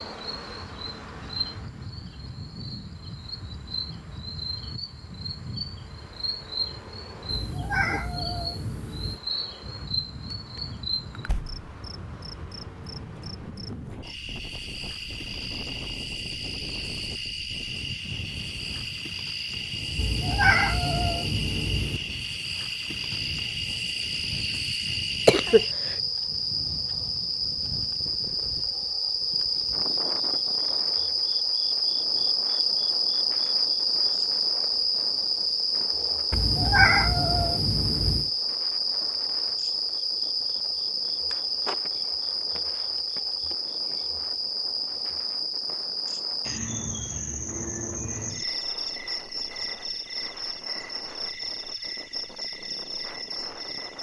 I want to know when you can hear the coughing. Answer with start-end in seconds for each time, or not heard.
25.2-25.9.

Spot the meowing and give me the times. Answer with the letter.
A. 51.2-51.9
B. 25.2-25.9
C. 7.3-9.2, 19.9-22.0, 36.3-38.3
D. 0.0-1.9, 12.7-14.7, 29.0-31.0
C.